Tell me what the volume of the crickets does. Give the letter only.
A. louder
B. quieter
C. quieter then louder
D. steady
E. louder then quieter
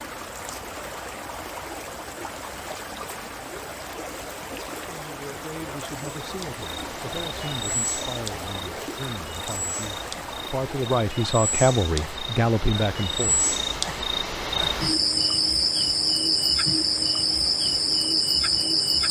A.